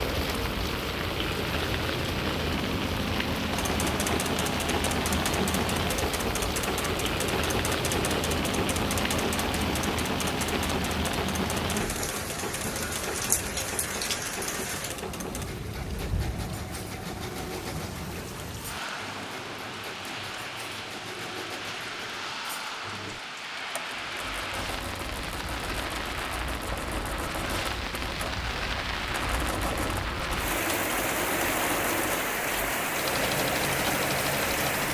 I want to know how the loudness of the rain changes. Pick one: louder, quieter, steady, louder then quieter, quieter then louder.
quieter then louder.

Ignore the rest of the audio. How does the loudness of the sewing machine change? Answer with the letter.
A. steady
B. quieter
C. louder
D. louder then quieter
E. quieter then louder
E.